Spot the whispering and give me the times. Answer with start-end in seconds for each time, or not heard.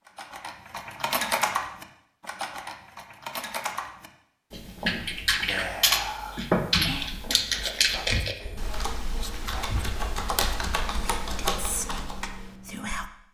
5.5-13.1.